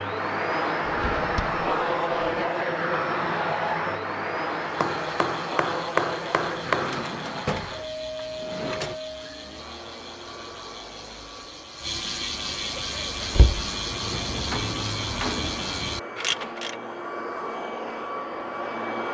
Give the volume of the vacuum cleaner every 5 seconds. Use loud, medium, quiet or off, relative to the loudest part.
loud, medium, quiet, medium.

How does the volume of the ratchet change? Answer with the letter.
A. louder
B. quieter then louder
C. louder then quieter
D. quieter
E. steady
A.